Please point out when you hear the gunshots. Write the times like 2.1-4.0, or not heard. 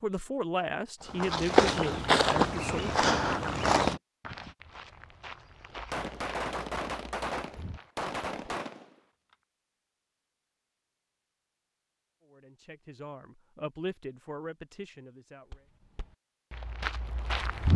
5.7-8.9.